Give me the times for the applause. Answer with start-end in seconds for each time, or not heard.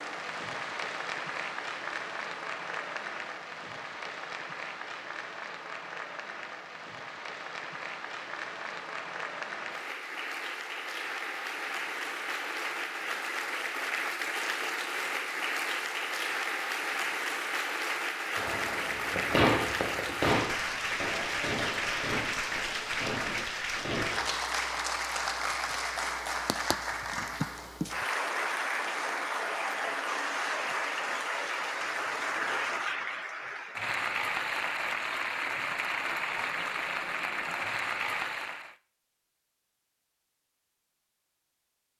0.0-38.8.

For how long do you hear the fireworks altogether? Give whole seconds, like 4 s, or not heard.
6 s.